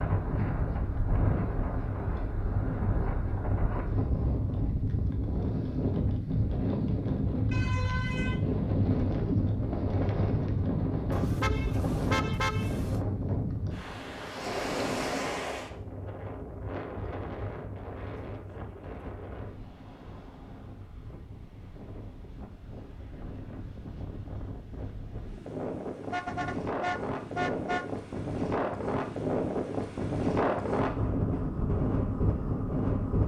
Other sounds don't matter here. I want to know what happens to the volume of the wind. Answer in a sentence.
The volume of the wind goes down, then up.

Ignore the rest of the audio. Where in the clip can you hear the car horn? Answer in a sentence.
You can hear the car horn from 7.5 to 8.4 s, from 11.1 to 13.0 s and from 26.1 to 27.9 s.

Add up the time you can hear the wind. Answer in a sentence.
You can hear the wind for 33 seconds altogether.